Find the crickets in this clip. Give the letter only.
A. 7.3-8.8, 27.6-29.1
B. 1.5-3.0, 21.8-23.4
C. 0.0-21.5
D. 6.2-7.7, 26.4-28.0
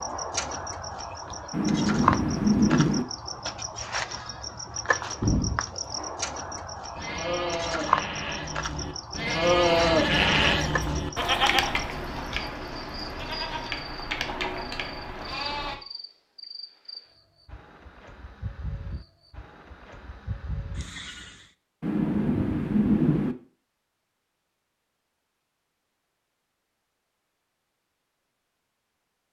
C.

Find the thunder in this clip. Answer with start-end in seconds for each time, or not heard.
1.5-3.0, 21.8-23.4.